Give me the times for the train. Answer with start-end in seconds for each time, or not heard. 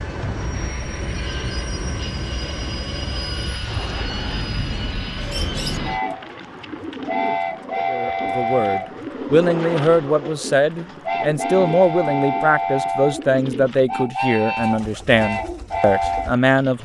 0.0-16.8.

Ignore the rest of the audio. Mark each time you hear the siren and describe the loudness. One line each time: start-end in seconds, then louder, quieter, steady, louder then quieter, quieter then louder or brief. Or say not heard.
not heard.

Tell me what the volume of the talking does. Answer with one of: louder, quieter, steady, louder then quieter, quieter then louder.
steady.